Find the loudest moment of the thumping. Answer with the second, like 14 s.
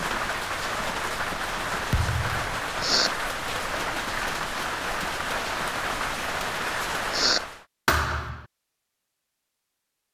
8 s.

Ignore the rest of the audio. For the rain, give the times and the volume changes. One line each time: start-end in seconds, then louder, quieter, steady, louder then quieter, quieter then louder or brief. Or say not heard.
0.0-7.7 steady.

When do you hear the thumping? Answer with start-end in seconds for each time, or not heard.
1.9-2.6, 7.8-8.4.